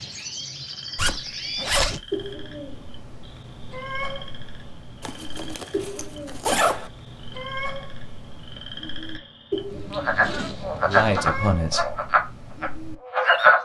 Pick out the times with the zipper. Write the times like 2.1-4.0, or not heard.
0.9-2.4, 5.0-6.9, 9.7-11.5.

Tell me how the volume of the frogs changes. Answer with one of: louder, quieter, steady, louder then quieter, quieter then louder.
louder.